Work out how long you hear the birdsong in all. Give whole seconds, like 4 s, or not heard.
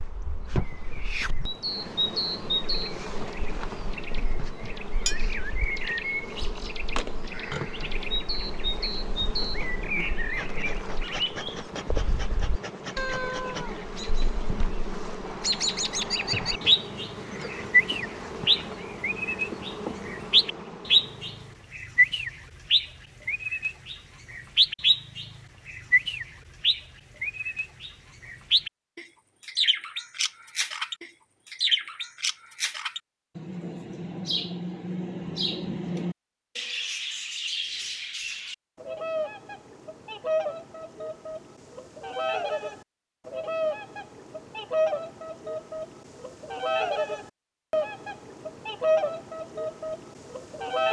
51 s.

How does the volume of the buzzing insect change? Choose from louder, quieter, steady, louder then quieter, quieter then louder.
steady.